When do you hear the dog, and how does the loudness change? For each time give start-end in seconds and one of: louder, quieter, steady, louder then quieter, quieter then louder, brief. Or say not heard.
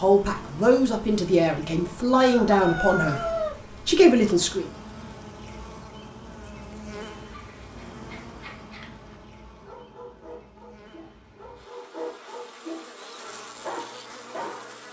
7.2-14.8 louder.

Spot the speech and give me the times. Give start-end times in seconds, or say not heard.
0.0-3.2, 3.9-4.7.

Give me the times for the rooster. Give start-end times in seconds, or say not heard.
2.1-3.6.